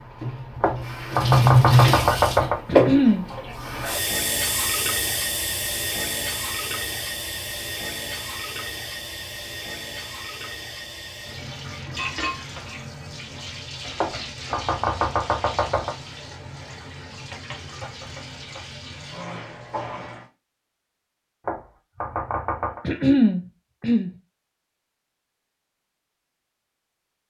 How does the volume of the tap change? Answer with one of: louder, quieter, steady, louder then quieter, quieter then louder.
quieter.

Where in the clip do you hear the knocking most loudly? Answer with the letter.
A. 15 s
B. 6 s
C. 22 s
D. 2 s
D.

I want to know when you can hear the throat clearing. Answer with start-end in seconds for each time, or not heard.
2.6-3.2, 22.9-24.1.